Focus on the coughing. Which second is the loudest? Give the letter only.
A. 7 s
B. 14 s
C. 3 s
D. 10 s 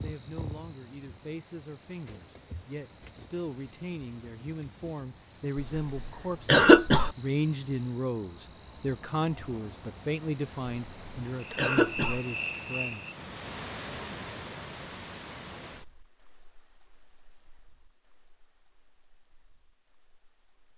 A.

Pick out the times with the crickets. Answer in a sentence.
You can hear the crickets from 0.0 to 13.2 s.